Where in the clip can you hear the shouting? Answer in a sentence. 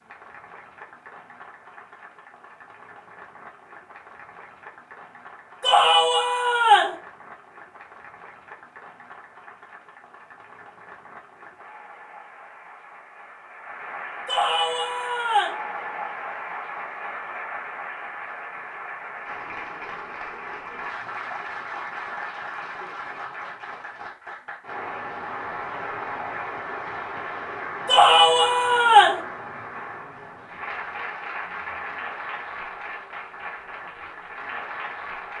The shouting can be heard from 5.6 to 7.0 s, from 14.2 to 15.6 s and from 27.9 to 29.2 s.